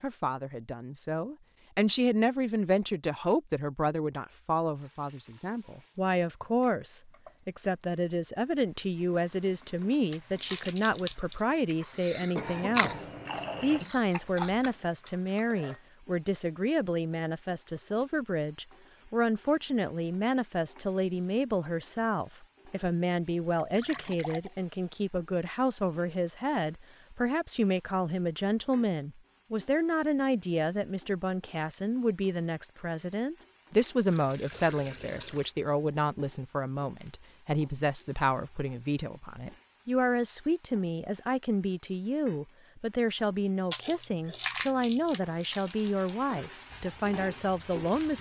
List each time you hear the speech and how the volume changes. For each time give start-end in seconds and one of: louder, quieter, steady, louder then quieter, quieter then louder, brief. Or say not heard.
0.0-48.1 steady.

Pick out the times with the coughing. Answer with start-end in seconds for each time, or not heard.
12.2-13.1.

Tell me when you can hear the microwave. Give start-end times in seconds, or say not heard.
not heard.